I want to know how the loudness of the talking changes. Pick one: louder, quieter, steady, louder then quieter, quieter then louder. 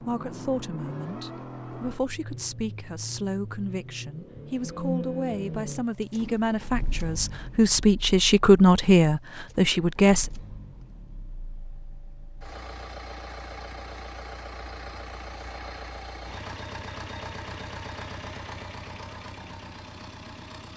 louder.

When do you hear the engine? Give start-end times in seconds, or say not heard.
0.0-20.7.